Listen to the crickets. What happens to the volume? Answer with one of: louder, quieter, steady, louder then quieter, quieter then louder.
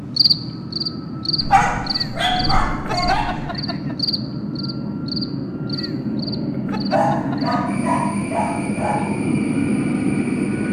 quieter.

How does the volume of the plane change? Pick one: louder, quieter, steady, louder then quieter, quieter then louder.
louder.